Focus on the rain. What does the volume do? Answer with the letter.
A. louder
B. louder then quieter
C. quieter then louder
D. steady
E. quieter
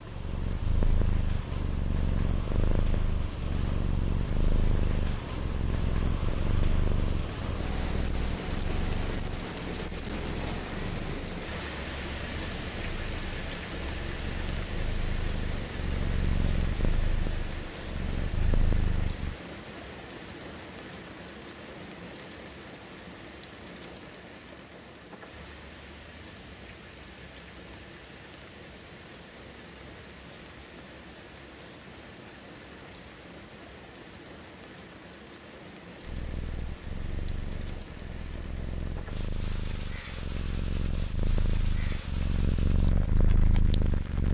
E.